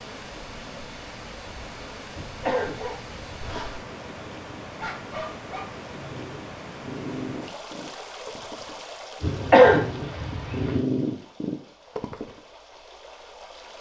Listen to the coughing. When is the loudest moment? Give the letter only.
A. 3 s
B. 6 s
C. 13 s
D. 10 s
D.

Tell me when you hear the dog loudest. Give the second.
11 s.